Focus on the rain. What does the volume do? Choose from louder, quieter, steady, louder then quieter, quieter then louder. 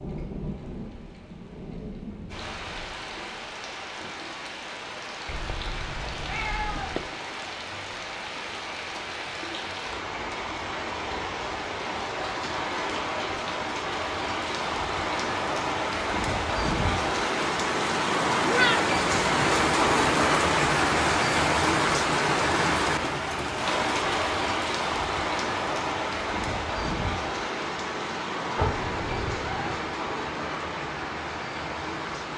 louder then quieter.